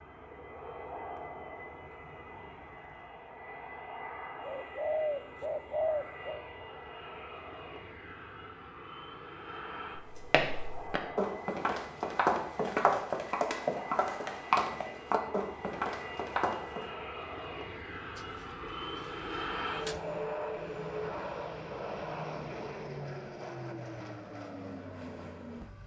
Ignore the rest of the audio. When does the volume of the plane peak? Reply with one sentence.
The loudest moment of the plane is at 20 seconds.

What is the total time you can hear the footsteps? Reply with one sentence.
You can hear the footsteps for 7 seconds altogether.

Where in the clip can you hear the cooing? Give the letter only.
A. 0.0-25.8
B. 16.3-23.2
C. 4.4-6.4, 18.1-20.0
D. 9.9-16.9
C.